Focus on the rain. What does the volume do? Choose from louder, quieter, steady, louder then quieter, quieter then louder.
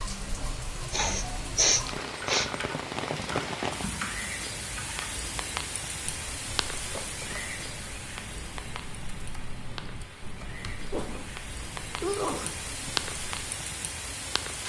quieter then louder.